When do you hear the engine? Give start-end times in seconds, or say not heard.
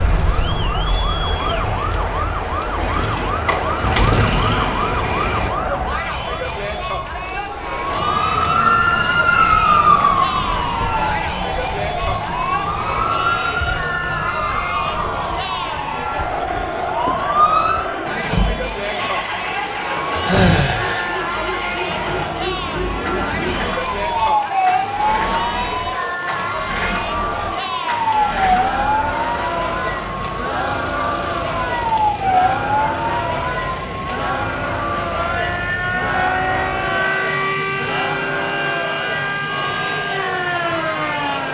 0.0-5.5, 18.0-41.4.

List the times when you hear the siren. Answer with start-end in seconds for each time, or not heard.
0.0-41.4.